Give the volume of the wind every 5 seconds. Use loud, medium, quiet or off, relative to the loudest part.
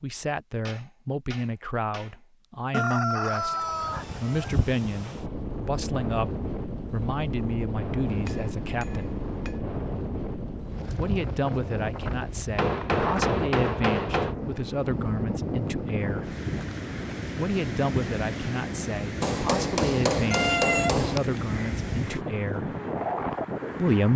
medium, loud, loud, loud, loud.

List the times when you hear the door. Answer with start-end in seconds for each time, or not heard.
not heard.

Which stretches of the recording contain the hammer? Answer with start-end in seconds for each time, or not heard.
0.7-2.2, 8.1-9.6, 12.6-14.3, 19.2-21.2.